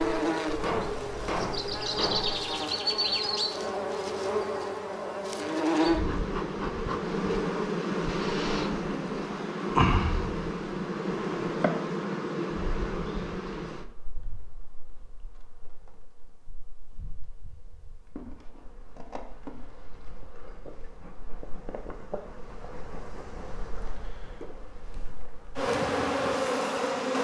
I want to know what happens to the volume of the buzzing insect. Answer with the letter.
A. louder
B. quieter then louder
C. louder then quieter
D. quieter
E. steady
B.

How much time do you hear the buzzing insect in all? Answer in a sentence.
The buzzing insect can be heard for 27 seconds in total.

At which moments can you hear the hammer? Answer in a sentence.
You can hear the hammer from 0.5 to 2.5 s.